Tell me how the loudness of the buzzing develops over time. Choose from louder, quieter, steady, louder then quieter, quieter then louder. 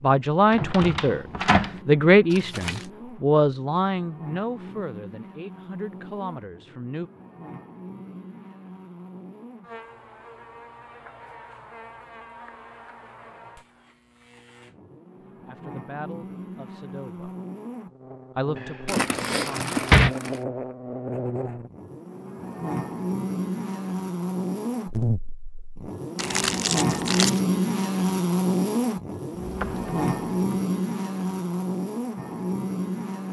louder.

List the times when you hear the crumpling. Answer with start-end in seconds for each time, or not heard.
2.3-2.9, 18.9-20.4, 26.1-27.4.